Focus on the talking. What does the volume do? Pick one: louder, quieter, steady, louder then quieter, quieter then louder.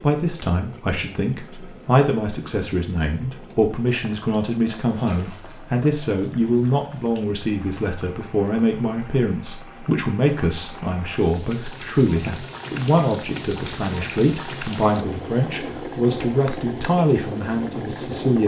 steady.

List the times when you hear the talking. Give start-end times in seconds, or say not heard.
0.0-18.4.